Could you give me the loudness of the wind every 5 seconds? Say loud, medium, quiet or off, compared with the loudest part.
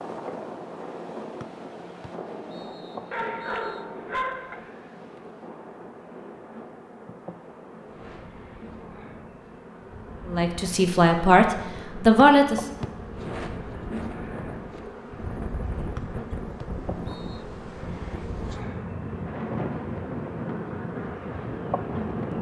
medium, quiet, medium, loud, loud.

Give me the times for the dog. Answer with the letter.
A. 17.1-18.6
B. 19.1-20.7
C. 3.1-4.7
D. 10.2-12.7
C.